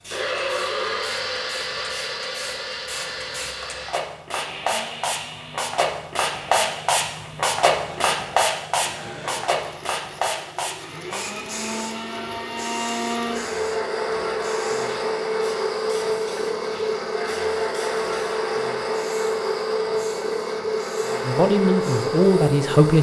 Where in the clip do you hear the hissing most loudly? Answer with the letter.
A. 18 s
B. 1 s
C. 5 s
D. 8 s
D.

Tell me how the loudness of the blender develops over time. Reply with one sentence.
The volume of the blender goes down, then up.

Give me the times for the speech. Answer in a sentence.
You can hear the speech from 21.2 to 22.9 s.